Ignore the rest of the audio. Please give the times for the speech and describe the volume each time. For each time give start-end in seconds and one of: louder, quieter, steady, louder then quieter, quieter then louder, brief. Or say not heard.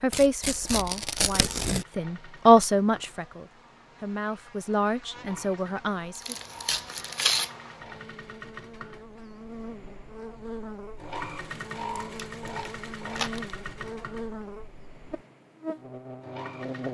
0.0-6.3 louder then quieter.